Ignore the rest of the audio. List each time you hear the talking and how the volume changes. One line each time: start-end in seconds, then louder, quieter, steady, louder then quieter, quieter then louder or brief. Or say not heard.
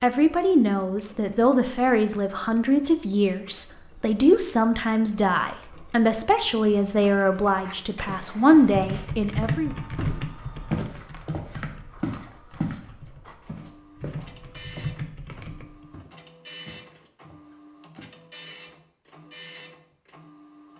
0.0-9.8 steady.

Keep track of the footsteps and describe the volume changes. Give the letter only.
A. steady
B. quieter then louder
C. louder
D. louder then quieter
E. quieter
D.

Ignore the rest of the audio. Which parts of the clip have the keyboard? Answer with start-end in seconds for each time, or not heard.
8.4-15.8.